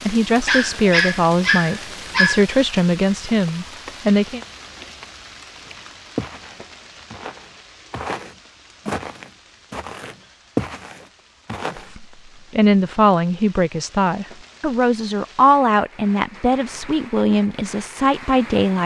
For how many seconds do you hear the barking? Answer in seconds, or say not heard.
2 s.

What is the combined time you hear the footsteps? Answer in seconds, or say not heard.
6 s.